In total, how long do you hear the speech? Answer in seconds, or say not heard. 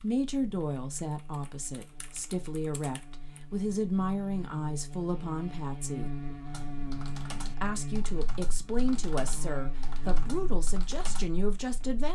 11 s.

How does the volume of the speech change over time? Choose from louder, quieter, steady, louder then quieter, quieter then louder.
steady.